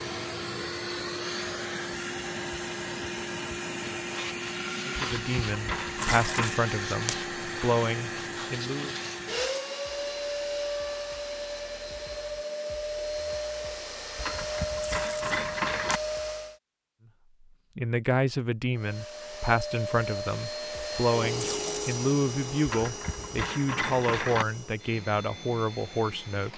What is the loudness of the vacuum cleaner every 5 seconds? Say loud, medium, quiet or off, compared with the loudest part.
loud, loud, loud, loud, loud, medium.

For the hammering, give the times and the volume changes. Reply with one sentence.
You can't hear the hammering here.